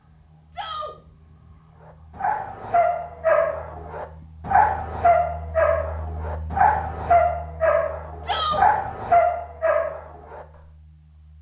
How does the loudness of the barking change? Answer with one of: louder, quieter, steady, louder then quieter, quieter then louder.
steady.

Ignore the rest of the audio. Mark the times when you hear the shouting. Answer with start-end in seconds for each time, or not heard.
0.5-0.9, 8.2-8.7.